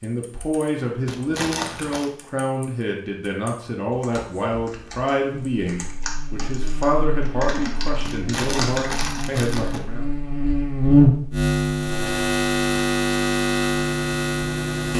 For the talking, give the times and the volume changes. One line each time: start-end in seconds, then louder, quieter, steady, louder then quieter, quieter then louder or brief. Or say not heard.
0.0-10.1 steady.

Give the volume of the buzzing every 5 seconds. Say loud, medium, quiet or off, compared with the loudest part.
off, quiet, loud.